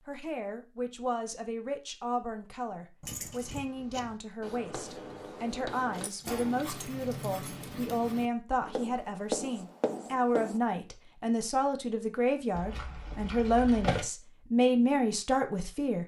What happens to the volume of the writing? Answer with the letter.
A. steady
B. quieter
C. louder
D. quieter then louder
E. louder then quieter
C.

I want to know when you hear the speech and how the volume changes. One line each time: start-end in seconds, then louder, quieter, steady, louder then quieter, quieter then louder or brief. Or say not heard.
0.0-16.0 louder.